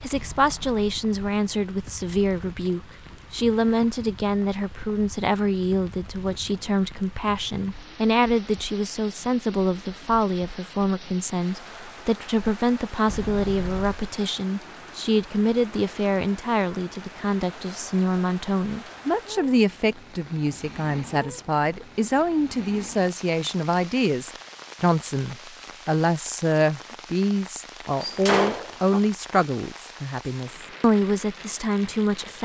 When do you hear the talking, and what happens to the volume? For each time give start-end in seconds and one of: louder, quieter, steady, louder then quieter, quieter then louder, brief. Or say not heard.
0.0-32.4 steady.